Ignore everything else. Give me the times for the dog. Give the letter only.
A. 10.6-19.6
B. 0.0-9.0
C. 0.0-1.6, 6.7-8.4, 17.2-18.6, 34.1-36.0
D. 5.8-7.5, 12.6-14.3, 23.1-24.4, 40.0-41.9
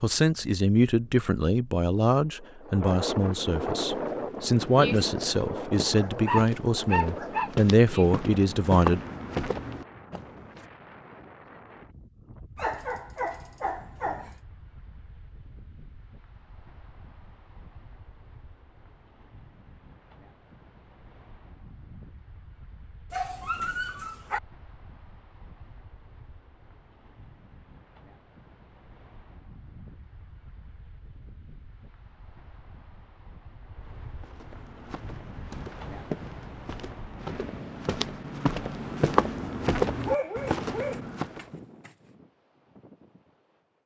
D.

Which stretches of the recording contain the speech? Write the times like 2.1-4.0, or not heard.
0.0-9.0.